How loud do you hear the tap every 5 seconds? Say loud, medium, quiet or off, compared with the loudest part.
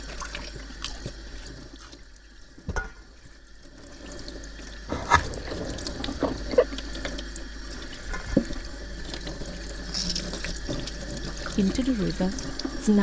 medium, loud, loud.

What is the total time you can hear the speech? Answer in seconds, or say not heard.
2 s.